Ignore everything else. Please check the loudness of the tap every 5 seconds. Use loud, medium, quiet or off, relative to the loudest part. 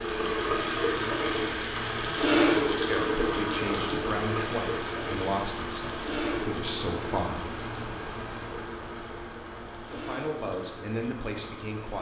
loud, medium, quiet.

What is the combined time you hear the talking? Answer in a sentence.
You can hear the talking for 7 seconds altogether.